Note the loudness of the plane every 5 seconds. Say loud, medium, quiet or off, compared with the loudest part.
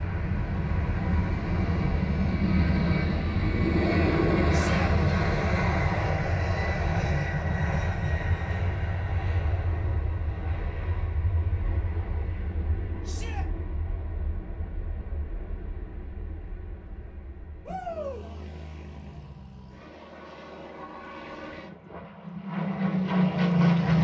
loud, loud, quiet, quiet, loud.